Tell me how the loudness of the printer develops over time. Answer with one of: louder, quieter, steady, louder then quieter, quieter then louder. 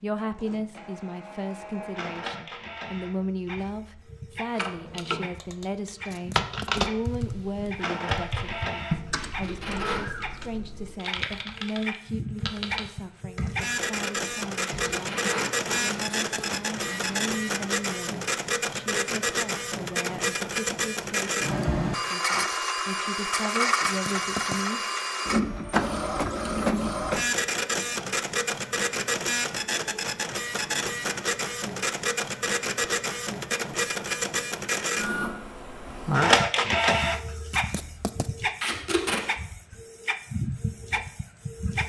louder.